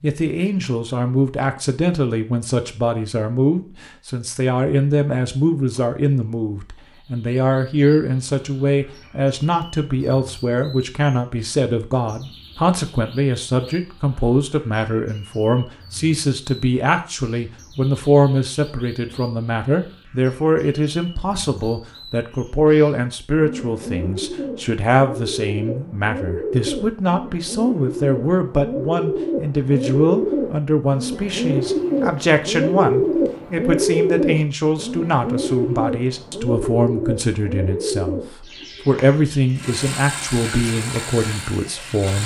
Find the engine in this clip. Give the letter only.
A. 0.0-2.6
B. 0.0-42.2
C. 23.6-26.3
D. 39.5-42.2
D.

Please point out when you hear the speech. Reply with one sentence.
The speech can be heard from 0.0 to 42.2 s.